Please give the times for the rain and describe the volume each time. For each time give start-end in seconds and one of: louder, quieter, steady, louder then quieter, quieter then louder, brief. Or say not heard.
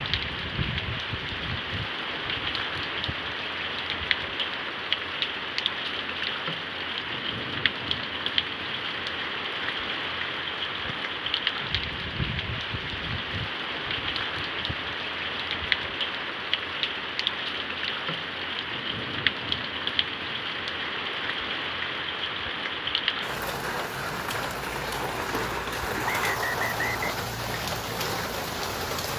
0.0-29.1 steady.